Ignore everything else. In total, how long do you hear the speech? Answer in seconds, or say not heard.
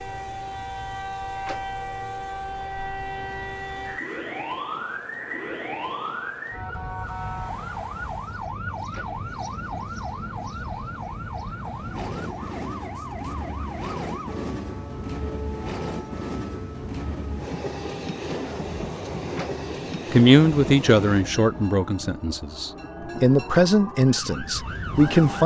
5 s.